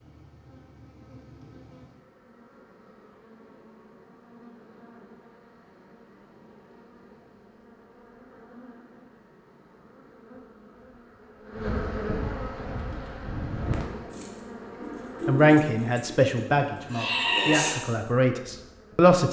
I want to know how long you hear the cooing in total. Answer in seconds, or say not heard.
5 s.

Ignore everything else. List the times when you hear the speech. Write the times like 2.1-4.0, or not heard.
15.2-19.2.